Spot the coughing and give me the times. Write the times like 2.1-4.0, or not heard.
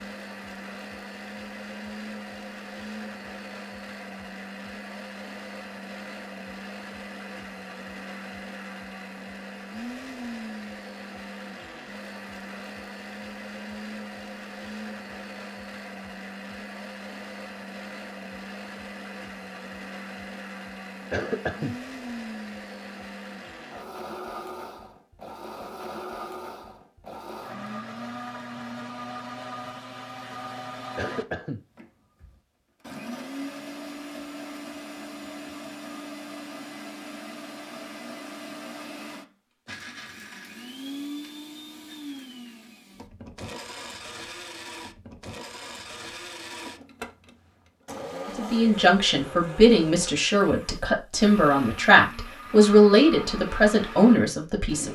21.1-21.8, 30.9-31.6.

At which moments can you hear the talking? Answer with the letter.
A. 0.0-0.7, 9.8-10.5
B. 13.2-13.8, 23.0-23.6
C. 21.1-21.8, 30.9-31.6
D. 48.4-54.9
D.